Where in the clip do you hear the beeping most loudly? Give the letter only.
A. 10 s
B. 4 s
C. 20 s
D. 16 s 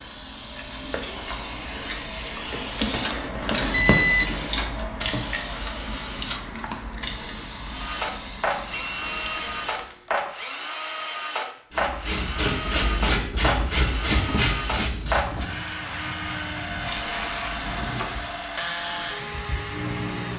B.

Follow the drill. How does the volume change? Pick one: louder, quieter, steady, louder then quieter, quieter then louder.
steady.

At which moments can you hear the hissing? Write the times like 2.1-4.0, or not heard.
0.0-10.1, 16.6-20.3.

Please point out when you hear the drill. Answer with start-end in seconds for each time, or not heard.
7.7-20.3.